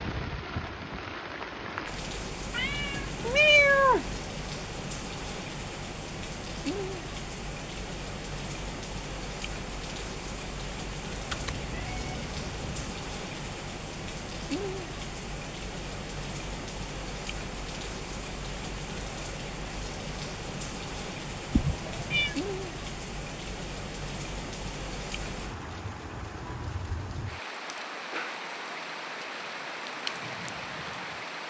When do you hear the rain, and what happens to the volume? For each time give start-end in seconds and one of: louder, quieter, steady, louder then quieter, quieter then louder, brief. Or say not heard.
0.0-31.4 steady.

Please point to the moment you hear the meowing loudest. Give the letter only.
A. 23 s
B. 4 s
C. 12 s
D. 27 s
B.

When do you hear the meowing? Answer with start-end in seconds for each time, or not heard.
2.5-4.2, 11.3-12.9, 21.5-22.4.